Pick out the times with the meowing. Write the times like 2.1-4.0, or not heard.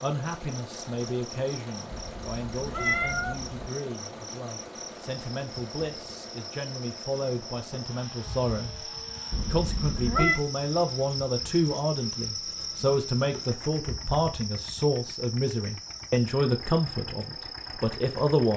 1.9-3.7, 9.3-10.4.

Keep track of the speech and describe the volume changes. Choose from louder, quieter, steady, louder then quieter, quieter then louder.
louder.